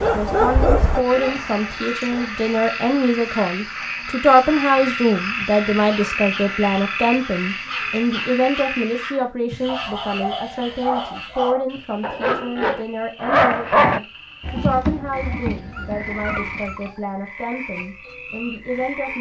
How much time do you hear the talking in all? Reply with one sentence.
You can hear the talking for 19 seconds altogether.